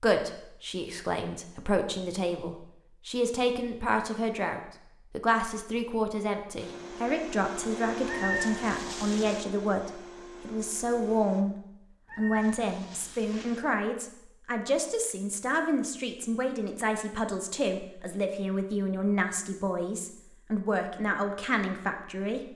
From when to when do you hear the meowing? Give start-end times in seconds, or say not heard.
8.1-9.4, 12.1-13.6.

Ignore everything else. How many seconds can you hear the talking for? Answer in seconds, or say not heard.
22 s.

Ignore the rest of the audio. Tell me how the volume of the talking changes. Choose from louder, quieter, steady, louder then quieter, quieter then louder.
steady.